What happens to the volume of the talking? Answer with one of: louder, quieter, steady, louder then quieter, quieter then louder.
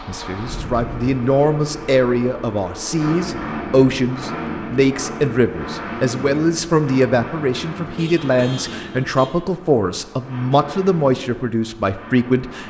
steady.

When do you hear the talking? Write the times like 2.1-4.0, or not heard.
0.1-12.6.